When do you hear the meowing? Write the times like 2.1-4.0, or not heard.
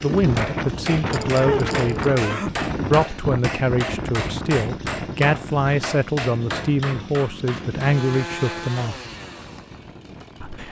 1.1-2.5.